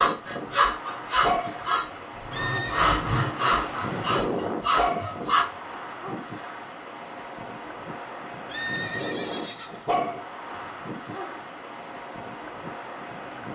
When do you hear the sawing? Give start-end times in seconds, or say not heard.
0.0-5.5.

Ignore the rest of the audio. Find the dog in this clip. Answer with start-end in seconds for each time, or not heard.
1.2-2.8, 4.8-6.2, 9.8-11.4.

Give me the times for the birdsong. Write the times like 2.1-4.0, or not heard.
not heard.